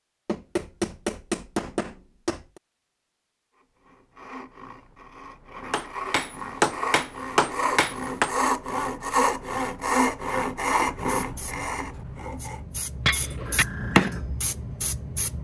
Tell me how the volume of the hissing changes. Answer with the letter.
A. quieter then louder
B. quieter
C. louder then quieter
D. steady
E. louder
C.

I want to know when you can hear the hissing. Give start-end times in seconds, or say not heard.
10.9-15.3.